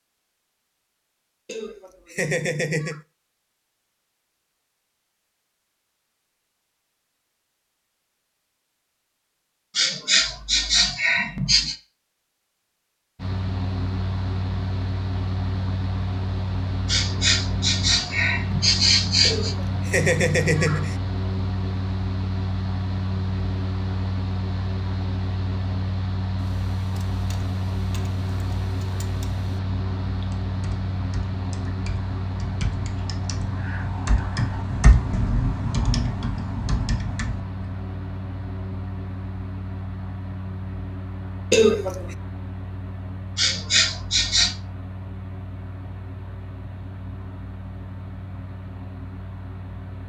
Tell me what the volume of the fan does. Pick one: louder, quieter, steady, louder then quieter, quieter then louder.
quieter.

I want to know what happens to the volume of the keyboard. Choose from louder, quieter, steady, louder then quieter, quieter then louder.
louder.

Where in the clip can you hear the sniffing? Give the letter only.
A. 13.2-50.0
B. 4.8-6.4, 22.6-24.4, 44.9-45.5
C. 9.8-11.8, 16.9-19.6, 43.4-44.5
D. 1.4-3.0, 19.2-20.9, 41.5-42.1
C.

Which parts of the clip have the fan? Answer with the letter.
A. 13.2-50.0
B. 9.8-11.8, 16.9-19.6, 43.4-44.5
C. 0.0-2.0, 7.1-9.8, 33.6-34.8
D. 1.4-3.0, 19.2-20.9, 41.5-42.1
A.